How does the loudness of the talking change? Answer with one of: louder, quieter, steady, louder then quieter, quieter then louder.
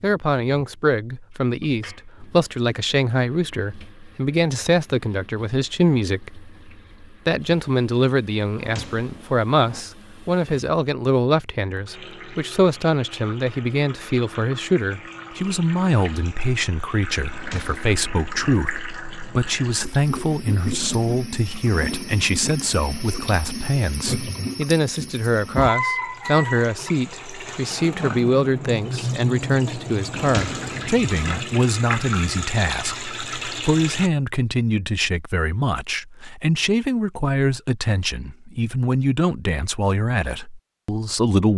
steady.